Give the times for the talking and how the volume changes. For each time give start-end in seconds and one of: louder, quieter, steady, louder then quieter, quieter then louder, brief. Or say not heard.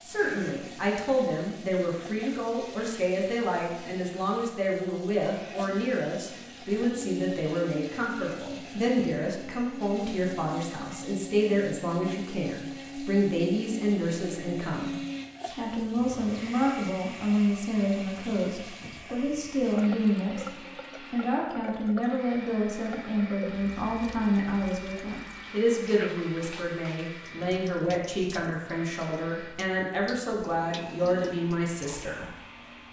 0.0-20.5 steady
21.1-32.2 steady.